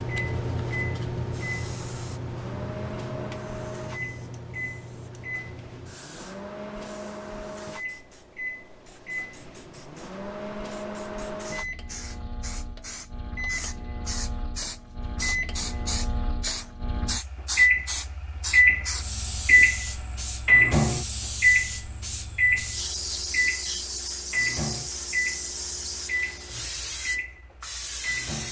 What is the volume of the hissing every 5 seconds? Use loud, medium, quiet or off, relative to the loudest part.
loud, quiet, medium, loud, loud, loud.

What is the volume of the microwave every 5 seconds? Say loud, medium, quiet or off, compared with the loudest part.
quiet, quiet, quiet, loud, loud, medium.